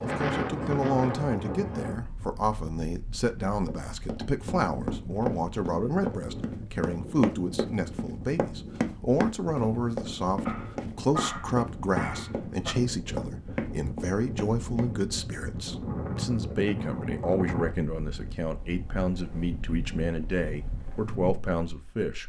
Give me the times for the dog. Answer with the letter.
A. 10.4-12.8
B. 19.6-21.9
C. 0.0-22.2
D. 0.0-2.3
A.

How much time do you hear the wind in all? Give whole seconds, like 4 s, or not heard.
22 s.